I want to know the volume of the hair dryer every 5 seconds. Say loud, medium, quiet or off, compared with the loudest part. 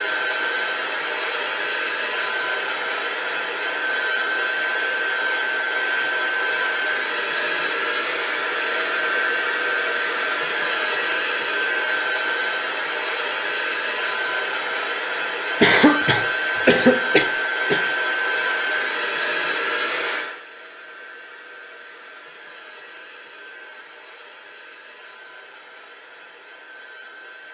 loud, loud, loud, loud, quiet, quiet.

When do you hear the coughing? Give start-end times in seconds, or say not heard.
15.6-17.8.